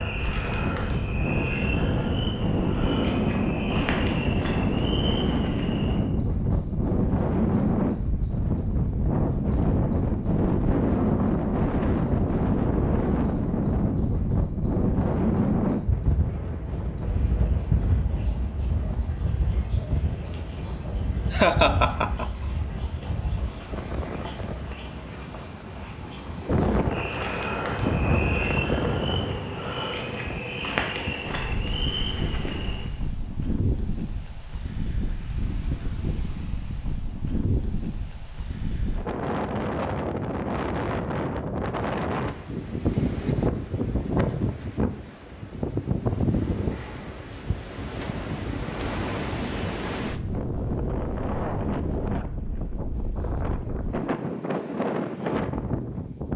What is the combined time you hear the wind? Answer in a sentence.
You can hear the wind for 56 seconds altogether.